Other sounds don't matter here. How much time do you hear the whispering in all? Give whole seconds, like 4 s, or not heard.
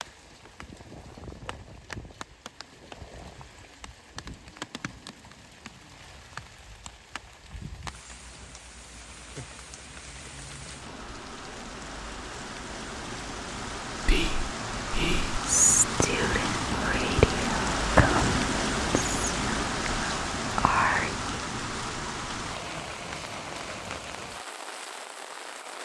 7 s.